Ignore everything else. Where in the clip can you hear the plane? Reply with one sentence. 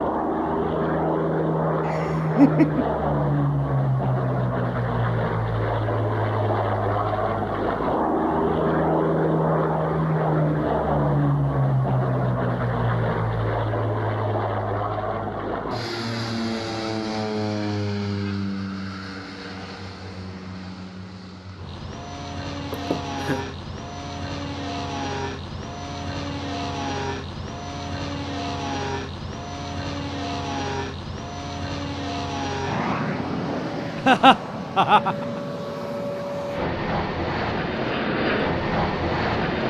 You can hear the plane from 0.0 to 39.6 s.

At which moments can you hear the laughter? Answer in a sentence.
The laughter can be heard from 1.9 to 2.9 s, from 22.7 to 23.4 s and from 34.0 to 35.2 s.